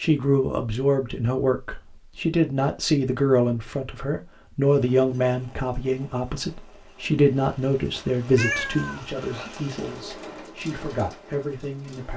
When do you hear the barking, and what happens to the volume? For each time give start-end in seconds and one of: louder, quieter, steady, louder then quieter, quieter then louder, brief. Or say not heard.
not heard.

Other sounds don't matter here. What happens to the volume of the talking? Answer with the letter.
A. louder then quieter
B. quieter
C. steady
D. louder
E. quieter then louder
B.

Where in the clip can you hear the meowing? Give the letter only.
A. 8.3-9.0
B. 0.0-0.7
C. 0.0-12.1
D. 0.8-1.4
A.